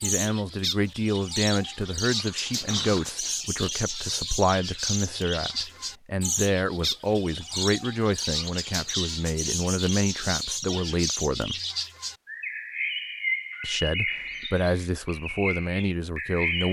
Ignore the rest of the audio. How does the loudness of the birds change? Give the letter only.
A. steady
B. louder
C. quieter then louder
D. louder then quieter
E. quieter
A.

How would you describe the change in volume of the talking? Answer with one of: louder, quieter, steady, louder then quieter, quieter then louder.
steady.